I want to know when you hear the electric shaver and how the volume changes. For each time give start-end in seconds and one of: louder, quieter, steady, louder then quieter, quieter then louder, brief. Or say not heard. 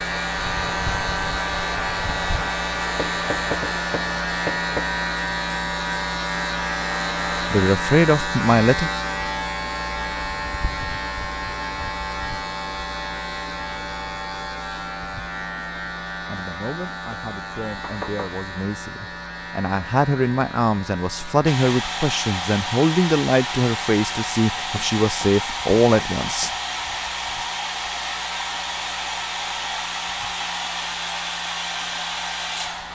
0.0-32.8 quieter.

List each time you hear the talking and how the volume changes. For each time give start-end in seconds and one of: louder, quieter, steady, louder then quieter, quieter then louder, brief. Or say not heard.
7.5-8.9 brief
16.2-26.6 louder.